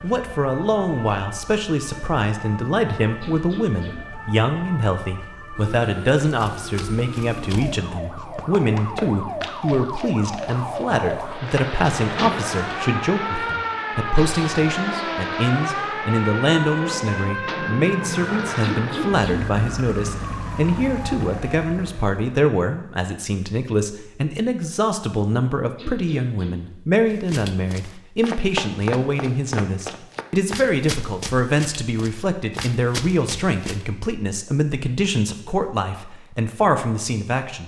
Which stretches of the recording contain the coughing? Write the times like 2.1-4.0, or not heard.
3.2-4.0, 18.6-19.5, 25.8-26.6.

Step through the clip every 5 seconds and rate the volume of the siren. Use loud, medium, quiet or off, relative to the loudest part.
medium, medium, loud, loud, medium, off, off, off.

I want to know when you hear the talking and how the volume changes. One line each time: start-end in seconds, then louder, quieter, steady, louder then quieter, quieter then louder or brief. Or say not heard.
0.0-37.6 steady.